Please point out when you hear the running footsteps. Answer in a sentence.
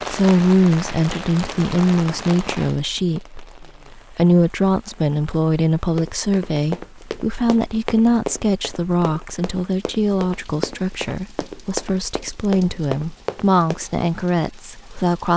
The running footsteps can be heard from 6.0 to 13.8 s.